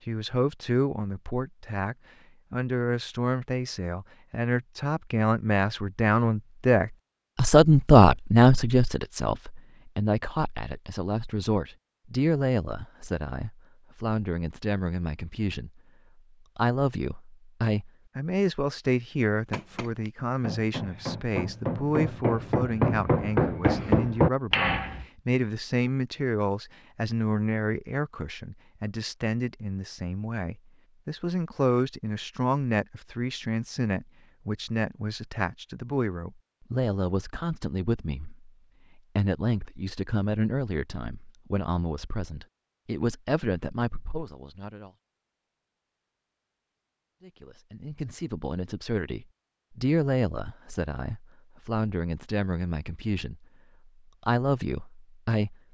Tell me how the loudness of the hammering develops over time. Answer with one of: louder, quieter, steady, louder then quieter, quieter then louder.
louder.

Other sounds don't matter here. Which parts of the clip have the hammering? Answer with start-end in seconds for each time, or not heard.
19.5-25.1.